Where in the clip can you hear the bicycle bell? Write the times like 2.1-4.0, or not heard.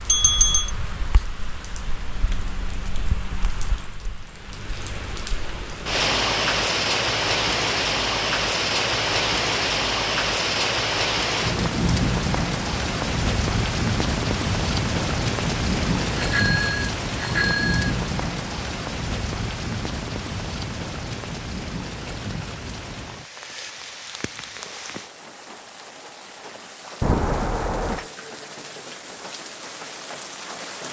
0.1-0.7, 16.1-17.9, 27.0-28.1.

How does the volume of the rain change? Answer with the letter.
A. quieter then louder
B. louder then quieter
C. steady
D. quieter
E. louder
B.